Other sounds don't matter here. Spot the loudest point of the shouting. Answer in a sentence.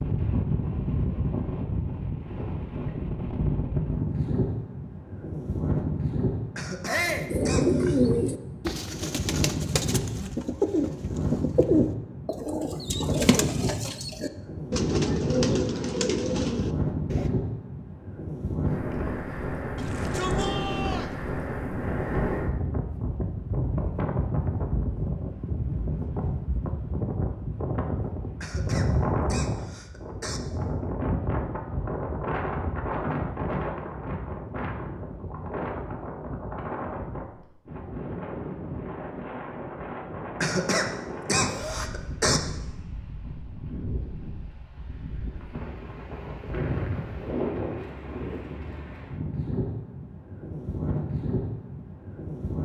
The loudest moment of the shouting is at 7 seconds.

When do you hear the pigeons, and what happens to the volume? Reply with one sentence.
You can hear the pigeons from 7.2 to 17.3 s, at a steady volume.